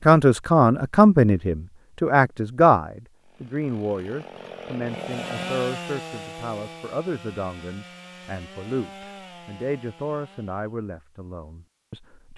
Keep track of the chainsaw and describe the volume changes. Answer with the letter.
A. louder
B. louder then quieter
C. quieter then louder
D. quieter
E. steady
B.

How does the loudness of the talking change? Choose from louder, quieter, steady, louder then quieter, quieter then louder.
quieter.